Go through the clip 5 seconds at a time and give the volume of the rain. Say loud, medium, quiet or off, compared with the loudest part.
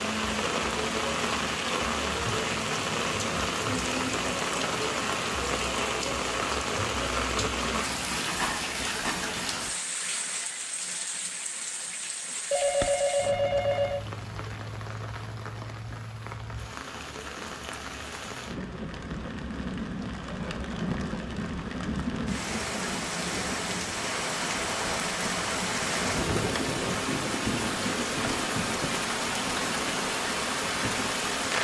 loud, loud, medium, medium, loud, loud, loud.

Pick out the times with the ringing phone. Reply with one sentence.
The ringing phone can be heard from 12.5 to 14.1 s.